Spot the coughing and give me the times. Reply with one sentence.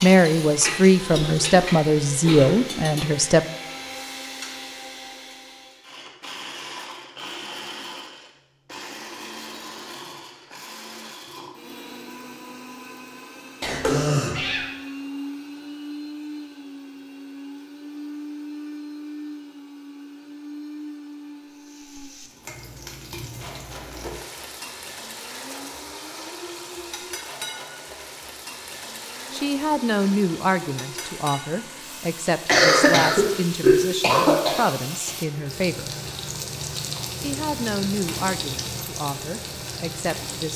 You can hear the coughing from 1.1 to 2.5 s, from 13.6 to 14.7 s and from 32.5 to 35.1 s.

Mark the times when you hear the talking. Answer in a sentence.
The talking can be heard from 0.0 to 3.5 s, from 29.3 to 36.0 s and from 37.2 to 40.5 s.